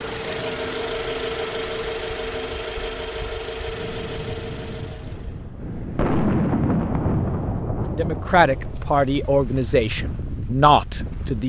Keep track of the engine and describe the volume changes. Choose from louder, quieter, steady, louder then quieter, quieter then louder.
quieter.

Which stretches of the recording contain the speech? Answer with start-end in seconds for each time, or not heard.
8.0-11.4.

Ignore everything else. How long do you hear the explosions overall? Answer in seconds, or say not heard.
3 s.